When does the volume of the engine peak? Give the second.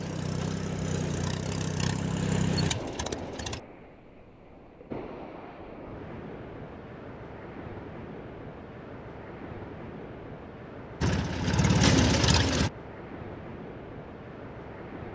12 s.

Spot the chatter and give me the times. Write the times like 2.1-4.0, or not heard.
not heard.